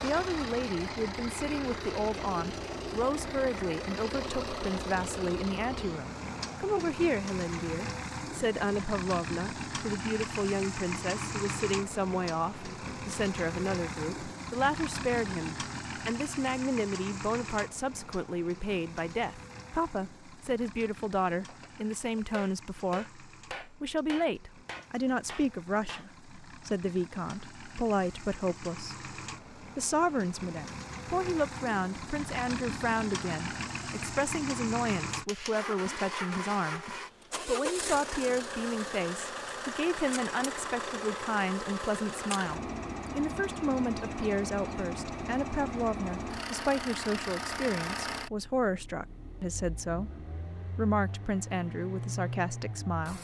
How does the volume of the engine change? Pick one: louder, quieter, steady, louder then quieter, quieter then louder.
quieter then louder.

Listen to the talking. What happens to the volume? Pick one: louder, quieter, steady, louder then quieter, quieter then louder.
steady.